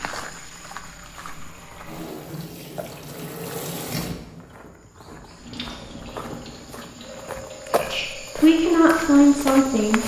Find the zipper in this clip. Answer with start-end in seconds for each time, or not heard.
not heard.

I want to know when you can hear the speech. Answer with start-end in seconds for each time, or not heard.
7.8-10.0.